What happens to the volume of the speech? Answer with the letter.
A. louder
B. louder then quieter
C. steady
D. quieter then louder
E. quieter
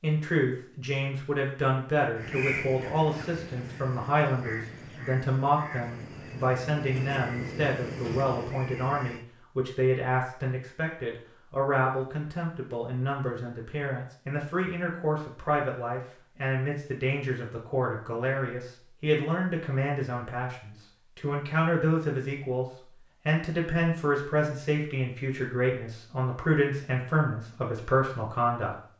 C.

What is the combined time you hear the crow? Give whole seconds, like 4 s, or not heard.
7 s.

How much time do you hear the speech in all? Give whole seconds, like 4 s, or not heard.
28 s.